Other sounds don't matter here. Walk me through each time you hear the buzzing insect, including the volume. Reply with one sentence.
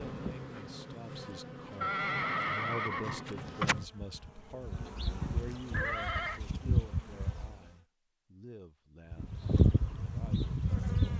You can hear the buzzing insect from 0.0 to 7.6 s, getting louder; and briefly from 9.1 to 11.1 s.